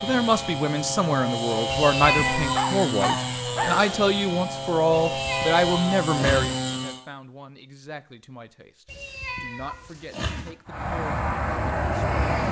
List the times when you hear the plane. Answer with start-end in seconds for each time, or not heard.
0.0-7.0, 10.7-12.4.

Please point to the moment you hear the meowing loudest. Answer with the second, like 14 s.
2 s.